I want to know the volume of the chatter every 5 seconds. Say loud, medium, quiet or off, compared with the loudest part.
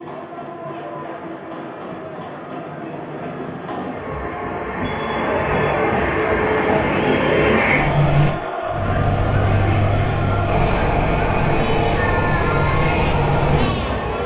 medium, loud, loud.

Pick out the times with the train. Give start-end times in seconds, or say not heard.
0.0-14.2.